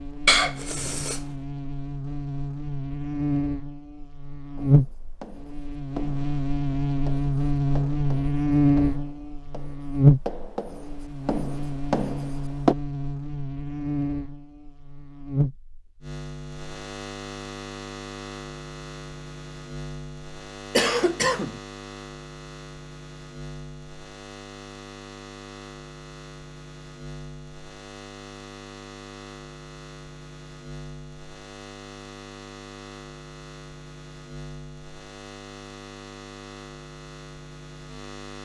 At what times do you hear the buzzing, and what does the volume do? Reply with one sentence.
You can hear the buzzing from 0.0 to 38.3 s, getting quieter.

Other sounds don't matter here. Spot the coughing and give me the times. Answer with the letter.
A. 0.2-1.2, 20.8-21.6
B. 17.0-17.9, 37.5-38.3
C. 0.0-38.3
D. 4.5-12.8
A.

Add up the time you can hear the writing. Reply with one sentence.
You can hear the writing for 8 seconds altogether.